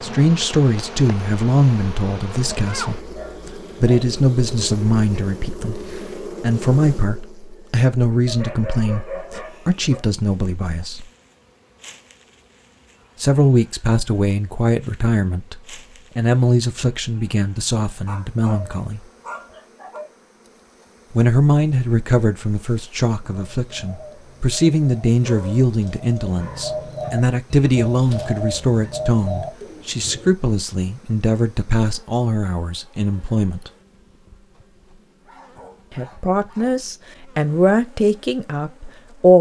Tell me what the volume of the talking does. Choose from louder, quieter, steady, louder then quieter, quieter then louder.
steady.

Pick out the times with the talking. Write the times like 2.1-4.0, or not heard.
0.0-11.1, 13.2-19.0, 21.1-33.7, 35.9-39.3.